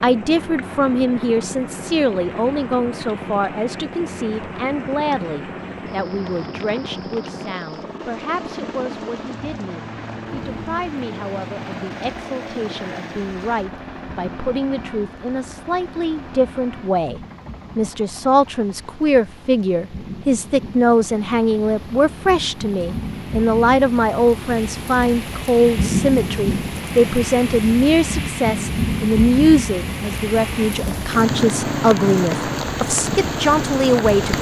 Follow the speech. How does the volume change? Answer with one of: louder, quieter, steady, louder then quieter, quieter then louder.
quieter then louder.